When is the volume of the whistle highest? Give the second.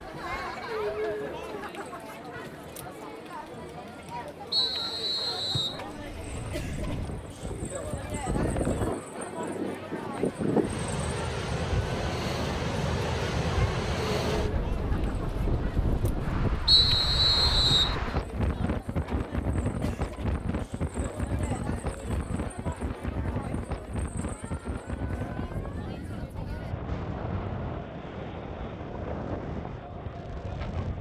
17 s.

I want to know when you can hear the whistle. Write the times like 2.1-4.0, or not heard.
4.5-5.8, 16.6-17.9.